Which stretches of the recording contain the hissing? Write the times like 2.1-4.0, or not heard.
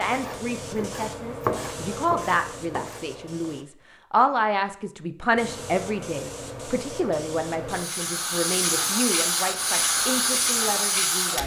0.0-3.6, 5.3-11.4.